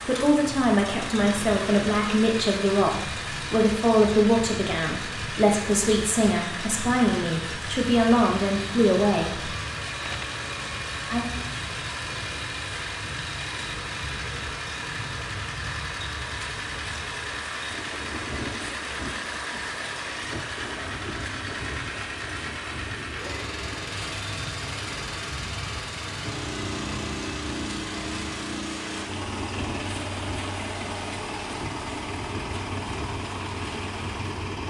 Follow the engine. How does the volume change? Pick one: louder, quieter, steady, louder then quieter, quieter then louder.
steady.